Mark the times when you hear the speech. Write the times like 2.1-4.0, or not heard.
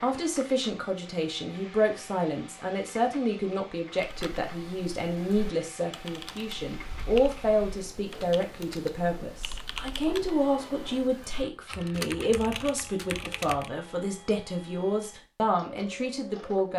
0.0-16.7.